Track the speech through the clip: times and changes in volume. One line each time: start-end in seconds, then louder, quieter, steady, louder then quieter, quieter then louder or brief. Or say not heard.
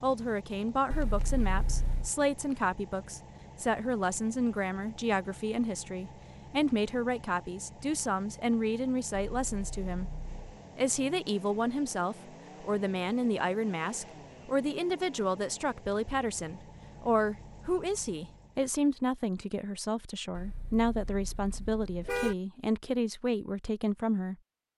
0.0-10.1 steady
10.8-24.4 steady.